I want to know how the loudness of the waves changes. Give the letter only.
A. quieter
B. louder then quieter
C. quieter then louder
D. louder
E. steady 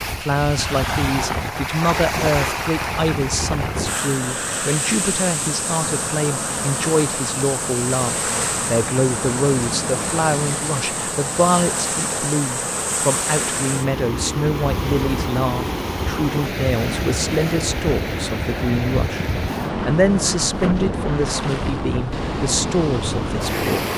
E.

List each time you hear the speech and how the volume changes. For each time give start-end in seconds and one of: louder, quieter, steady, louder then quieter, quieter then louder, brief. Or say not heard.
0.1-23.9 steady.